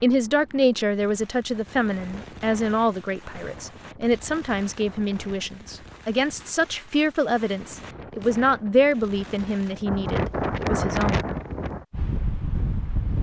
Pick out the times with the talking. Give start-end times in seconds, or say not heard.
0.0-11.2.